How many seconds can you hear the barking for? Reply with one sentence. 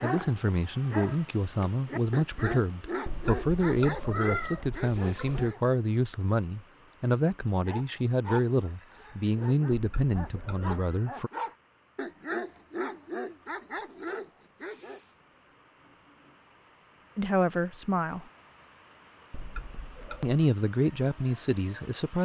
The barking can be heard for 13 seconds in total.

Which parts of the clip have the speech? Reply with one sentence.
The speech can be heard from 0.0 to 11.3 s, from 17.1 to 18.2 s and from 20.2 to 22.2 s.